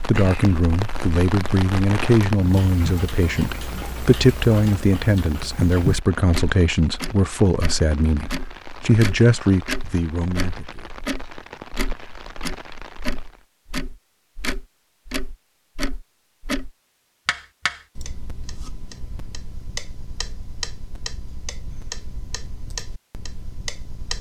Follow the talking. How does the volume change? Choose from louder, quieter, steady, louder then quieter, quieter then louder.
steady.